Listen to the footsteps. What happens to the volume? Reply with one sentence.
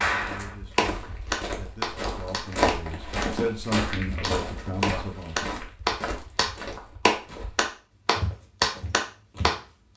The volume of the footsteps goes up, then down.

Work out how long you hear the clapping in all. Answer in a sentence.
You can hear the clapping for 10 seconds altogether.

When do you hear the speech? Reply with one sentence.
You can hear the speech from 0.0 to 5.3 s.